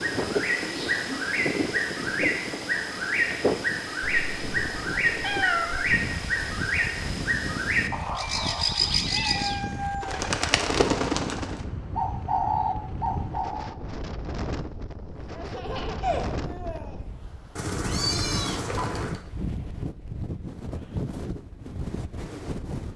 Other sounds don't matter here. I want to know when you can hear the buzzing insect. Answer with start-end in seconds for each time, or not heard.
not heard.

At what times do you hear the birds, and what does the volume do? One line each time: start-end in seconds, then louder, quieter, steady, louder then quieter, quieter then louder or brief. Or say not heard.
0.0-13.8 steady.